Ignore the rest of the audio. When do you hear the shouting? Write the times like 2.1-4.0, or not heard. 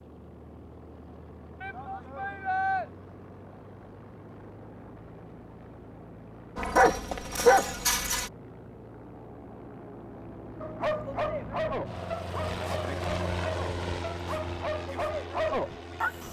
1.6-2.9.